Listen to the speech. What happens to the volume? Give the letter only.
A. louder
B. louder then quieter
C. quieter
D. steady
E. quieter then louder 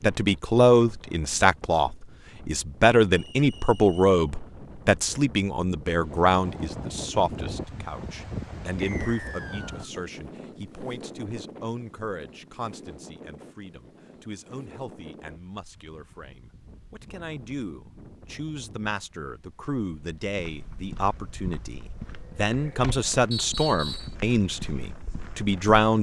E.